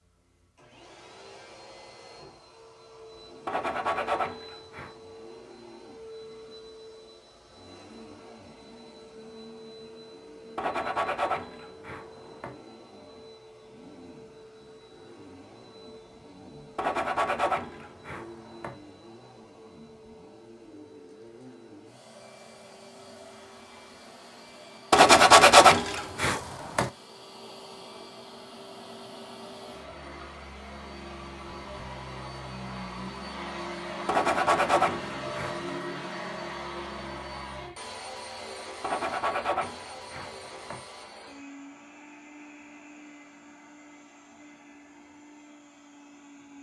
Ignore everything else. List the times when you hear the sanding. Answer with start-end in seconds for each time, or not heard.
3.5-5.0, 10.6-12.6, 16.8-18.8, 24.9-26.9, 34.0-35.6, 38.8-40.8.